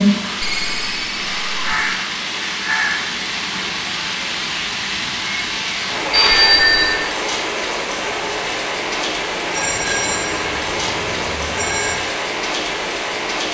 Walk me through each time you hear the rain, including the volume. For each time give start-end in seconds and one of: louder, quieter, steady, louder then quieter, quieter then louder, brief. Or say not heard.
0.0-13.4 steady.